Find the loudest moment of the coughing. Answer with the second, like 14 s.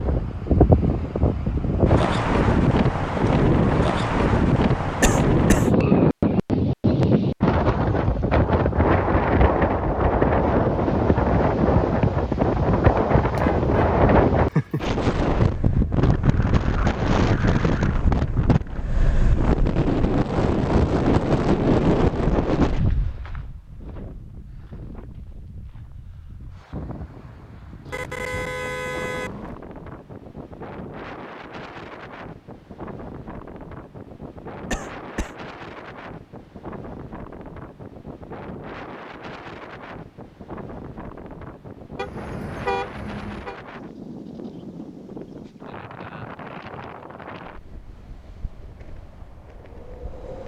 5 s.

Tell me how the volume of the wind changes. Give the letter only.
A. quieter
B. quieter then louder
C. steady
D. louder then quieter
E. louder
A.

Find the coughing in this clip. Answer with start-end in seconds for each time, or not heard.
5.0-5.7, 34.7-35.3.